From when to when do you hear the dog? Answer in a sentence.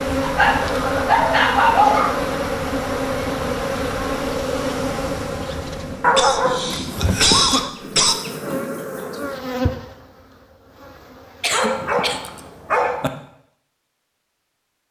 The dog can be heard from 0.2 to 2.1 s, from 6.0 to 7.7 s and from 11.5 to 13.1 s.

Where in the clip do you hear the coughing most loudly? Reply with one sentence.
The loudest moment of the coughing is at 7 seconds.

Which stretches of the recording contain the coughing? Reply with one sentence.
You can hear the coughing from 0.6 to 1.4 s, from 6.2 to 8.2 s and from 11.4 to 12.3 s.